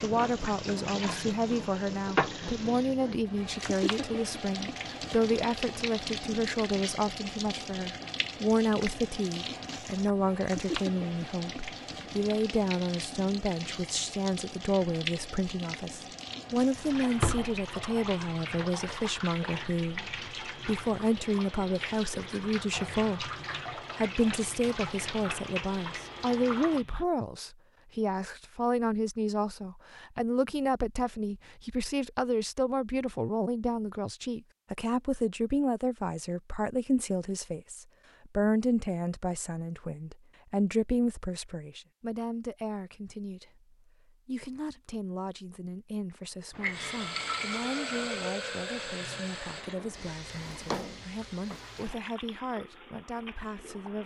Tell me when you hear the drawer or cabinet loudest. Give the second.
17 s.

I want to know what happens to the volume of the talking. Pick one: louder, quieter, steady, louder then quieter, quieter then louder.
quieter.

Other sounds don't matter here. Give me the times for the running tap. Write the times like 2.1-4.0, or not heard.
0.0-27.1, 46.5-54.0.